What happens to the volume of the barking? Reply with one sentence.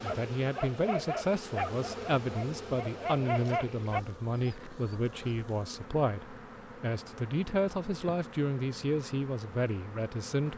The volume of the barking goes down, then up.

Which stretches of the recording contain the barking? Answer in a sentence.
You can hear the barking from 0.0 to 5.0 s.